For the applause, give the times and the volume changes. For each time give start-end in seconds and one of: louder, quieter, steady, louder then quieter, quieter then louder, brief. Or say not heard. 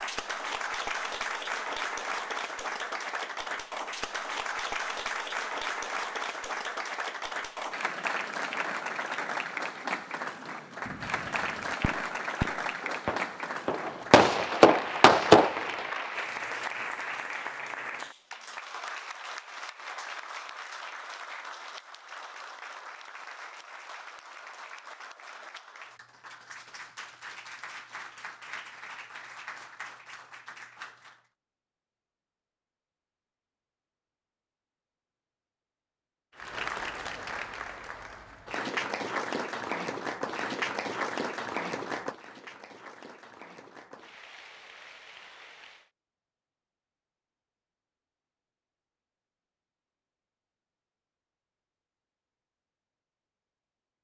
0.0-31.2 quieter
36.4-45.9 louder then quieter.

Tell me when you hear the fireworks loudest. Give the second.
15 s.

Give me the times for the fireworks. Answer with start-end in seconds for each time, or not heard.
10.8-15.7.